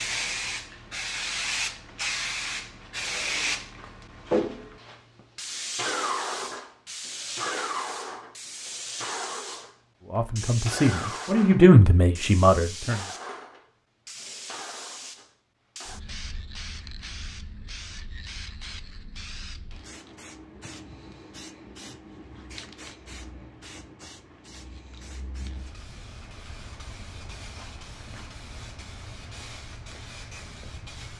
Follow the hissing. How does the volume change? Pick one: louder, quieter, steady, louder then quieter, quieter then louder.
quieter.